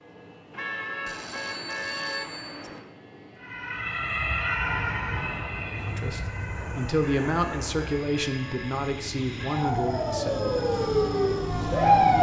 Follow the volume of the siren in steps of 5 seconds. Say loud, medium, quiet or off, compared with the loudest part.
medium, quiet, loud.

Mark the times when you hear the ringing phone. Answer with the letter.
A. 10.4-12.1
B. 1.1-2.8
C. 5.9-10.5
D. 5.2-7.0
B.